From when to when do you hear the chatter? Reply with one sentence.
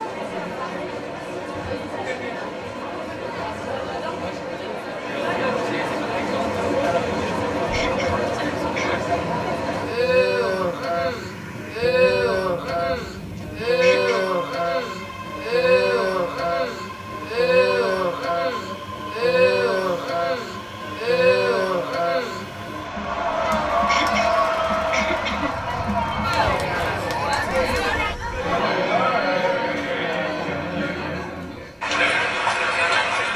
The chatter can be heard from 0.0 to 33.3 s.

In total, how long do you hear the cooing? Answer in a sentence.
You can't hear the cooing here.